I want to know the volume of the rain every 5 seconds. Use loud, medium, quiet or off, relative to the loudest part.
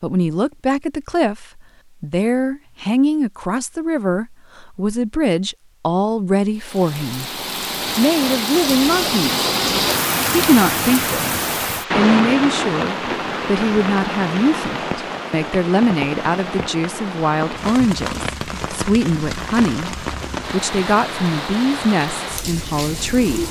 off, loud, loud, medium, medium.